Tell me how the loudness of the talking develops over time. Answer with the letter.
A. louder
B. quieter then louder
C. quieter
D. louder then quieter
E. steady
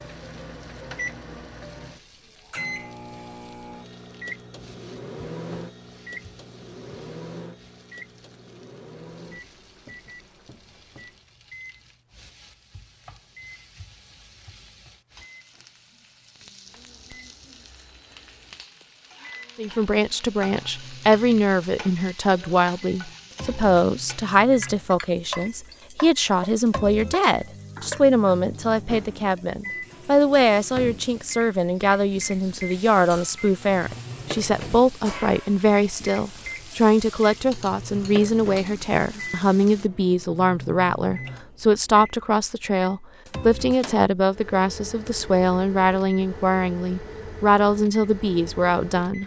E.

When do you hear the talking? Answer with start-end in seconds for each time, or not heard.
19.6-49.2.